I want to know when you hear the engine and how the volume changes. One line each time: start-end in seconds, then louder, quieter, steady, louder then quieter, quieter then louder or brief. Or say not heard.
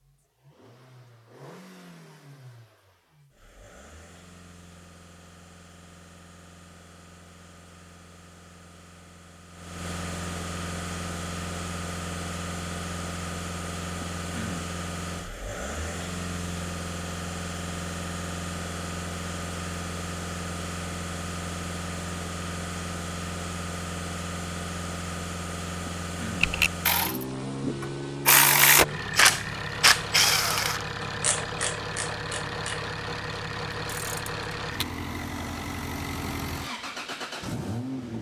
0.0-38.1 louder.